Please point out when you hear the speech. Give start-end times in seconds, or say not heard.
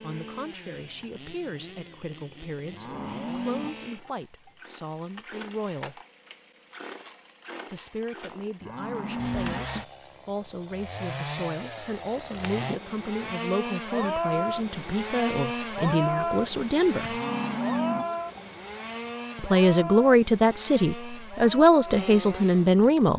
0.0-6.0, 7.7-17.2, 19.4-23.1.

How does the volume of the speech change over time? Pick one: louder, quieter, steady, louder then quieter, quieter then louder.
louder.